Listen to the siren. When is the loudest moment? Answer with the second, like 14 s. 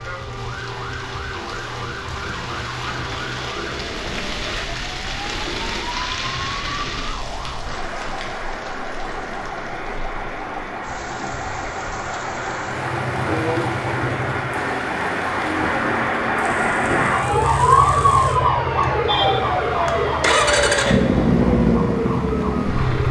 18 s.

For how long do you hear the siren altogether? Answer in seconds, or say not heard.
23 s.